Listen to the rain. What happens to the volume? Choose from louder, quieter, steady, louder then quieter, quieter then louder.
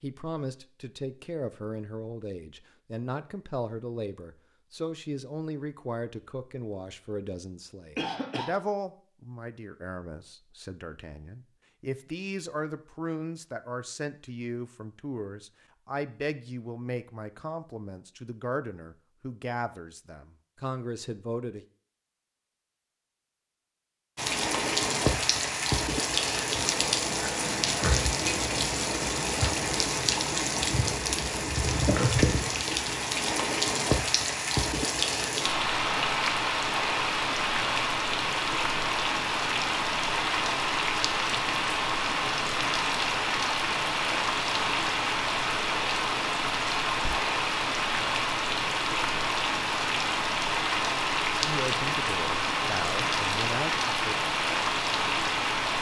steady.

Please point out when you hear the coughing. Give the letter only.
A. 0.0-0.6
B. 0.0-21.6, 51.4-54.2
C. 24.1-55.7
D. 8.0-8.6
D.